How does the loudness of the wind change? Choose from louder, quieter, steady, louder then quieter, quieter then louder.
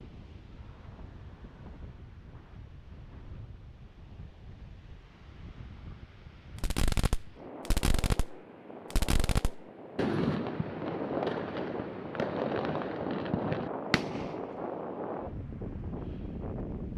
louder.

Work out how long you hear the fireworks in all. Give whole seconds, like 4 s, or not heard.
8 s.